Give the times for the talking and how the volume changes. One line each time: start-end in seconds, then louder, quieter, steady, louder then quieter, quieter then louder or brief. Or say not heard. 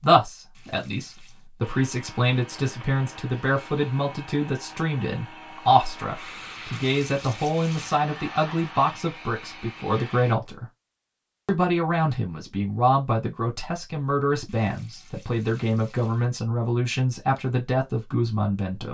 0.0-10.7 steady
11.4-18.8 steady.